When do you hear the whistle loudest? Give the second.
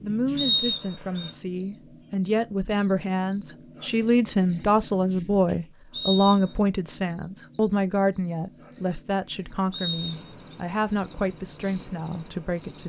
1 s.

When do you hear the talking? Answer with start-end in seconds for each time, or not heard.
0.0-12.8.